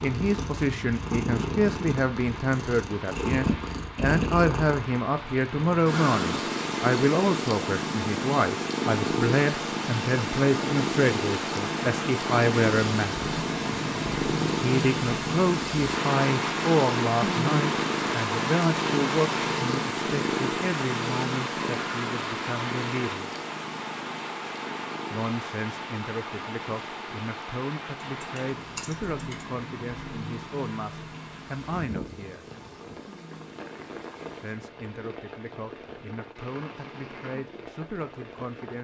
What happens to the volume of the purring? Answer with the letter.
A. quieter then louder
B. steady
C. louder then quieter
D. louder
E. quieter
E.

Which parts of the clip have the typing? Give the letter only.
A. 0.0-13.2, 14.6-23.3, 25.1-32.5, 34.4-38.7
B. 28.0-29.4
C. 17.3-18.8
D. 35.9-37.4
B.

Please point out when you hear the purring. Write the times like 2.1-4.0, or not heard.
0.0-34.6.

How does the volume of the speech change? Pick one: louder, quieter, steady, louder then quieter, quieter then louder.
quieter.